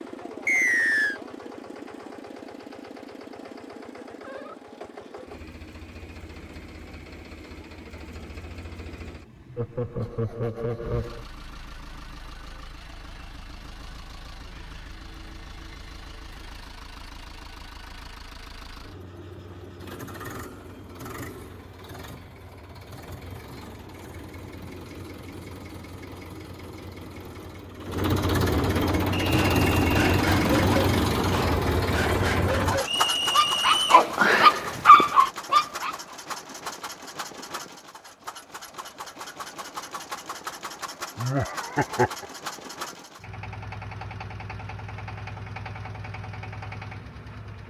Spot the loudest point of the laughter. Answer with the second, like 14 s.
42 s.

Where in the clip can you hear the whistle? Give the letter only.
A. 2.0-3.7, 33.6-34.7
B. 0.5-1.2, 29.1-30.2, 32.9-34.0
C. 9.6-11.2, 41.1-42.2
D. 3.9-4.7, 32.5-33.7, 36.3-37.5
B.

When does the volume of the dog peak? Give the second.
35 s.